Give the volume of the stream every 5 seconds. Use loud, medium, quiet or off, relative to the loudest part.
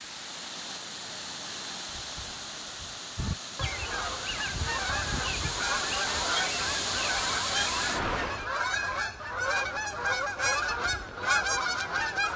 medium, loud, off.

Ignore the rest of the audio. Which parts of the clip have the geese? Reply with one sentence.
You can hear the geese from 3.1 to 12.3 s.